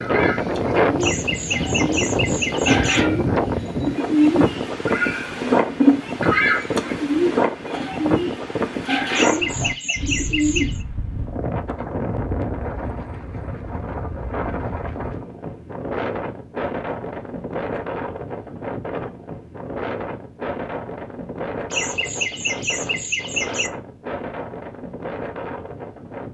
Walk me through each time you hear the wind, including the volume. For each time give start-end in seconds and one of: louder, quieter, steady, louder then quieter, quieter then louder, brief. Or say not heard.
0.0-26.2 quieter.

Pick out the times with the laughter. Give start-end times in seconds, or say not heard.
1.0-3.0, 9.1-10.8, 21.7-23.7.